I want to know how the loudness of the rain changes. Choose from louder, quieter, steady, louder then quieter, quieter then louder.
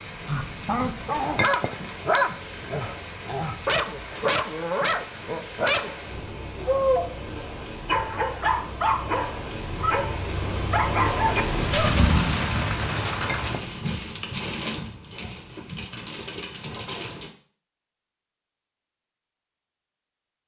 louder then quieter.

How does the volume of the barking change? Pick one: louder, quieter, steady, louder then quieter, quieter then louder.
steady.